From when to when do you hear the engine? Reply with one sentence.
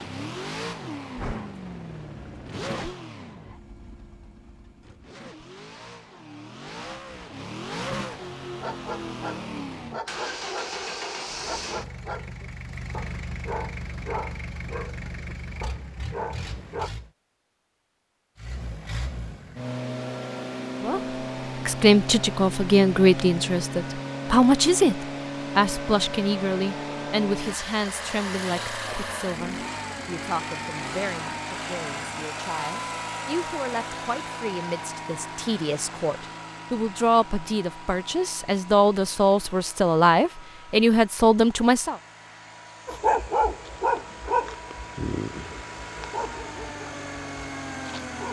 The engine can be heard from 0.0 to 17.1 s and from 18.4 to 48.2 s.